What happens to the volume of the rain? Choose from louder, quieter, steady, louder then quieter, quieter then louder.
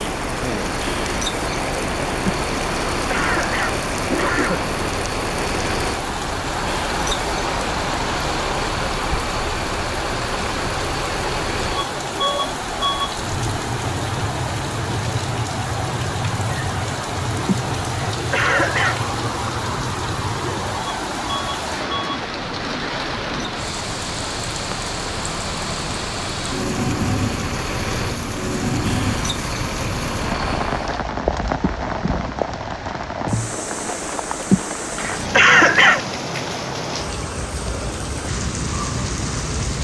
steady.